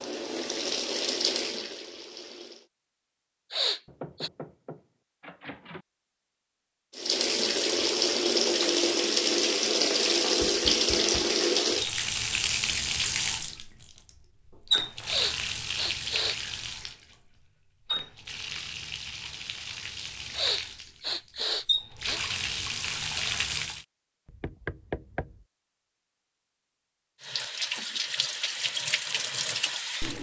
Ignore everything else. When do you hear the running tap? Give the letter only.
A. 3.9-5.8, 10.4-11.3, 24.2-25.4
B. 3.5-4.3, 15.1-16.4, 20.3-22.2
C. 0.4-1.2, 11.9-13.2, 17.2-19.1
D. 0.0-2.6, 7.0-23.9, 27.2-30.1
D.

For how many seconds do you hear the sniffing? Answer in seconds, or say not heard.
4 s.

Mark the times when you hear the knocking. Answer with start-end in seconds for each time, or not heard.
3.9-5.8, 10.4-11.3, 24.2-25.4.